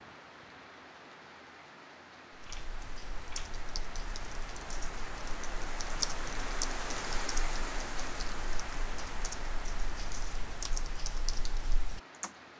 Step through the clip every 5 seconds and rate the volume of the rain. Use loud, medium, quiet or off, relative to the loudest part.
medium, loud, medium.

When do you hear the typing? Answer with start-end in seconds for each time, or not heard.
2.3-12.3.